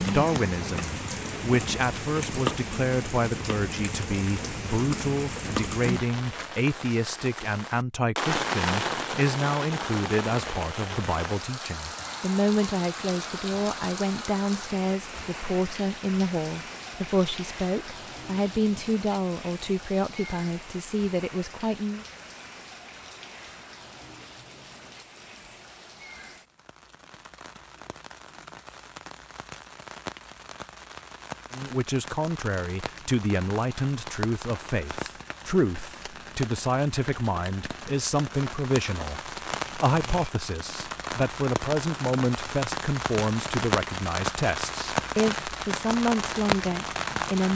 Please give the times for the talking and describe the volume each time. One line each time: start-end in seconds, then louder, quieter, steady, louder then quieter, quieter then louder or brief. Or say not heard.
0.1-22.1 steady
31.5-47.5 steady.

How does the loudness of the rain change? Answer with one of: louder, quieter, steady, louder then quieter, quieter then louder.
quieter then louder.